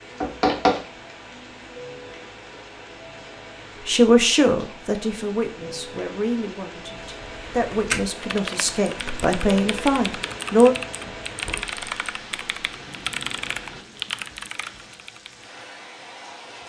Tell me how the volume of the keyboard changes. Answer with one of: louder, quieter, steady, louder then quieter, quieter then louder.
steady.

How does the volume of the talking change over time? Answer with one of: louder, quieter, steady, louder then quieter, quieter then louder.
quieter then louder.